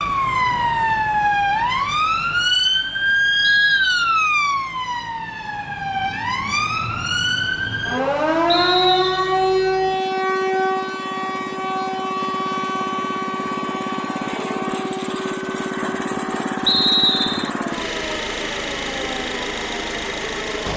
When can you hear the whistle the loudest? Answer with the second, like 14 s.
17 s.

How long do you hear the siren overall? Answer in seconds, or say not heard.
21 s.